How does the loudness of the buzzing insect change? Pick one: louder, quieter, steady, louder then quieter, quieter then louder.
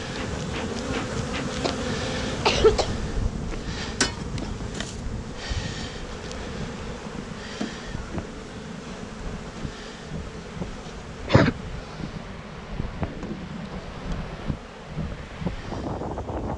quieter.